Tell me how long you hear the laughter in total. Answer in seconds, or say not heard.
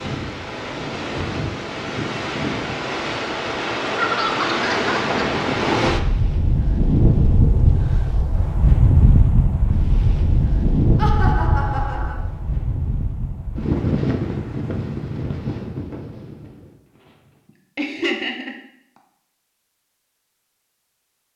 4 s.